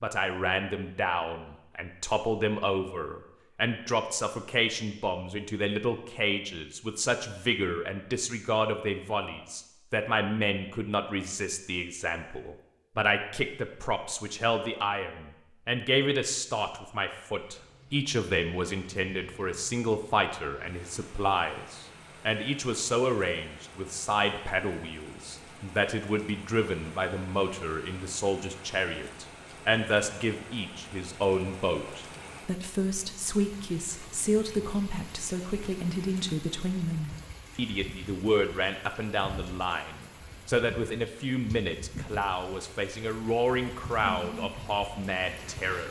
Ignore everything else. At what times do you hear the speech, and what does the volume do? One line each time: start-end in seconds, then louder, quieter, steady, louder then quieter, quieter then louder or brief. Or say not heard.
0.0-45.8 steady.